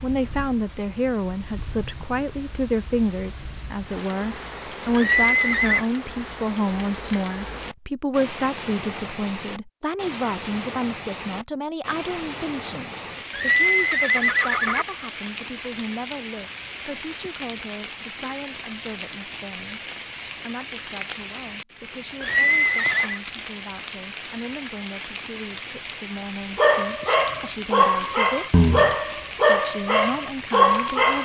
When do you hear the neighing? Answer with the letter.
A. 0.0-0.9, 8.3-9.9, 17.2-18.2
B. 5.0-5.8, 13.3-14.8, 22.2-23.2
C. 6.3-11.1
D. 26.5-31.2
B.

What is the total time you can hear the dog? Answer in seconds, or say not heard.
5 s.